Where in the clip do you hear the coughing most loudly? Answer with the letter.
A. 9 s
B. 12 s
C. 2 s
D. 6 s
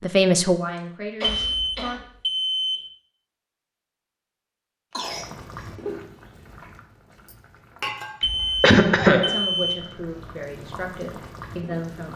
A.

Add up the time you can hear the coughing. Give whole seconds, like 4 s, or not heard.
3 s.